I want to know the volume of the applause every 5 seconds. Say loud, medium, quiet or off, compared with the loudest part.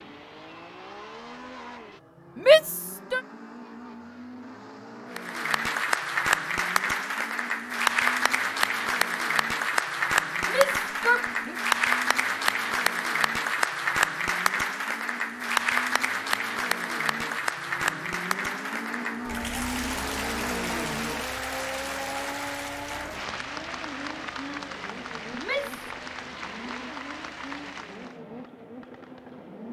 off, loud, loud, loud, medium, quiet.